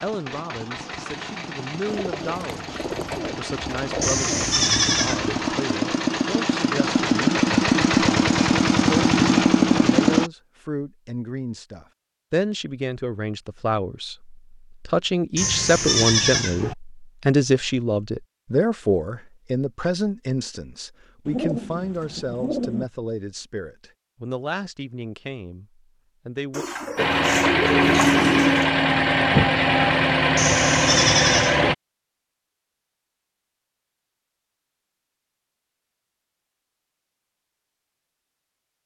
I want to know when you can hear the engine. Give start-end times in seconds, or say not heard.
0.0-10.3, 26.9-31.8.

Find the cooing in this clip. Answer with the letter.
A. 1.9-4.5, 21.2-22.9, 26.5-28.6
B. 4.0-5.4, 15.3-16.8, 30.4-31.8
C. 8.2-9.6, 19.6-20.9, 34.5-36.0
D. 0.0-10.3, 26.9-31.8
A.